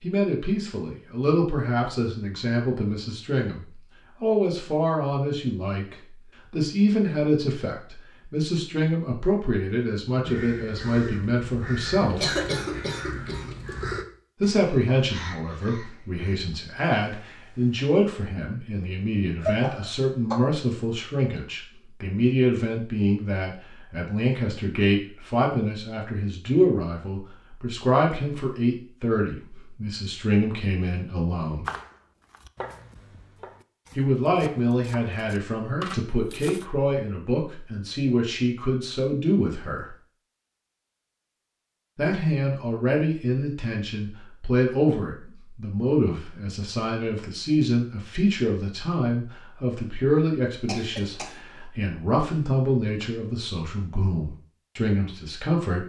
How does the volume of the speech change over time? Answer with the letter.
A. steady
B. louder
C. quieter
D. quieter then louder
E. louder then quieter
A.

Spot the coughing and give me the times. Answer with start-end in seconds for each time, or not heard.
12.1-13.6, 19.4-20.4, 50.6-51.6.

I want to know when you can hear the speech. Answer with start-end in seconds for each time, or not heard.
0.0-12.3, 14.4-31.6, 34.0-40.0, 42.0-55.8.